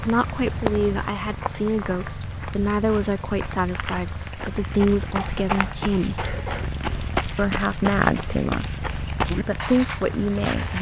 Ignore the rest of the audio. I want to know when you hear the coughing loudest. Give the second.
6 s.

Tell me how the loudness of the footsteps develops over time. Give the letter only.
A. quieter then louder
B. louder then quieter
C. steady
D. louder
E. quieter
D.